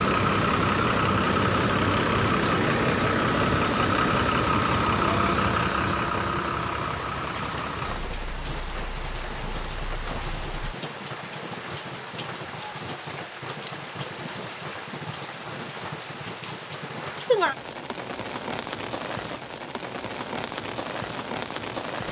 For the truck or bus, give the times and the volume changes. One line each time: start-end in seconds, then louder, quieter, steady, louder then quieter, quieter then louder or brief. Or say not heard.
0.0-10.8 quieter.